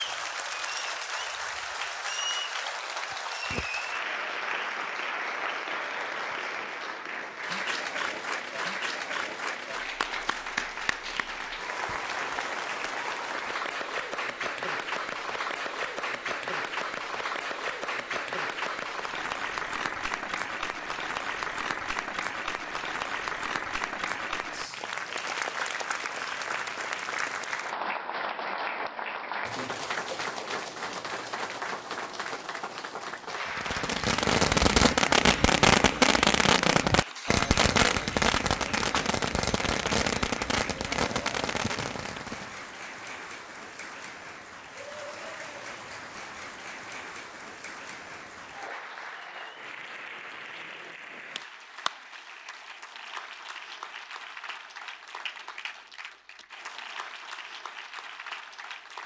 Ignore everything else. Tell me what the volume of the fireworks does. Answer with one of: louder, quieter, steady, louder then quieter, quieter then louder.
quieter.